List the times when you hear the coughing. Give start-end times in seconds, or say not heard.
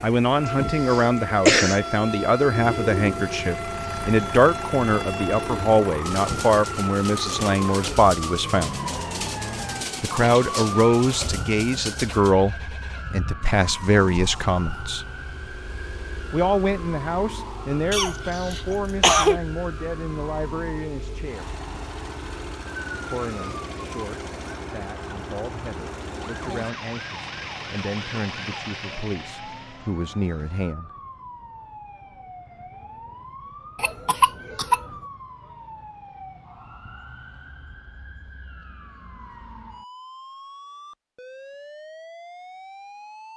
0.8-1.8, 17.9-19.4, 33.8-34.9.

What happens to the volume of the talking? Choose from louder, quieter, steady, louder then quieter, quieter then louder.
quieter.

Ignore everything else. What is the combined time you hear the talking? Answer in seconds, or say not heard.
27 s.